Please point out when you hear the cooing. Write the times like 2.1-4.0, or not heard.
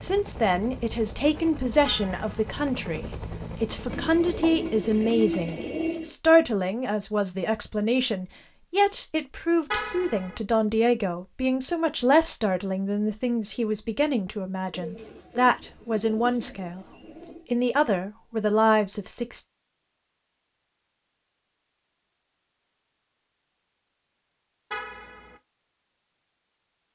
3.9-6.2, 14.7-17.5.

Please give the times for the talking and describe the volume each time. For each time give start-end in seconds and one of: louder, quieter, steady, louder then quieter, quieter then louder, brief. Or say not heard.
0.0-16.9 steady
17.5-19.4 brief.